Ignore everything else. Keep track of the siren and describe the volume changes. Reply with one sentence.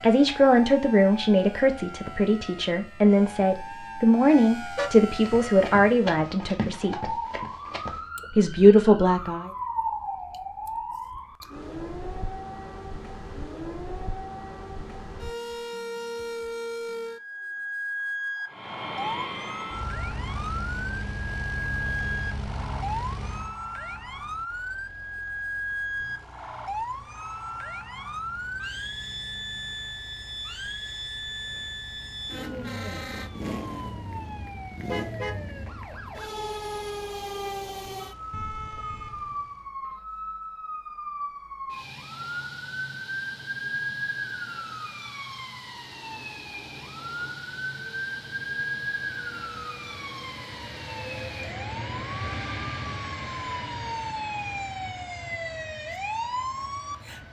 The volume of the siren stays about the same.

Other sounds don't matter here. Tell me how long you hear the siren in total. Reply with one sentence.
The siren can be heard for 57 seconds in total.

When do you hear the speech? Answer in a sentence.
The speech can be heard from 0.0 to 7.2 s and from 8.3 to 9.5 s.